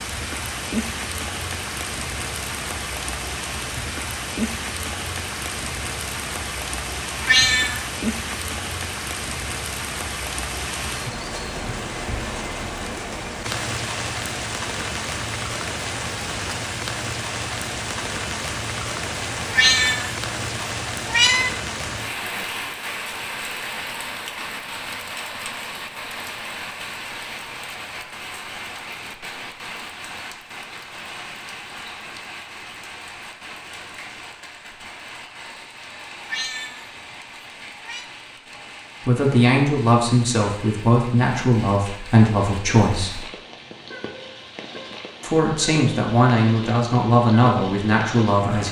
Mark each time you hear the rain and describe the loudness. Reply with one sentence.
You can hear the rain from 0.0 to 48.6 s, getting quieter.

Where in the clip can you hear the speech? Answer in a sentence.
You can hear the speech from 39.0 to 43.2 s and from 45.2 to 48.6 s.